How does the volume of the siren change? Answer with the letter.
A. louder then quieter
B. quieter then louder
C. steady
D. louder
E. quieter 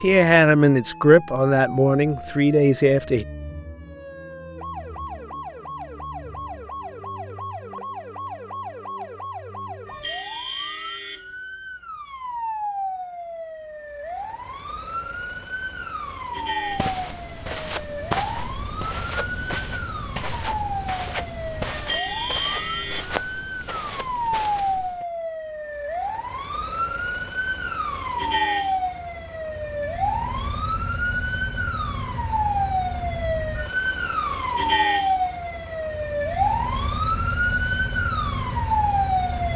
D.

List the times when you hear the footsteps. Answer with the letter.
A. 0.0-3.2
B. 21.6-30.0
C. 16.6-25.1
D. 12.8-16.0
C.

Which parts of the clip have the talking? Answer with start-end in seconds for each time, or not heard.
0.0-3.2.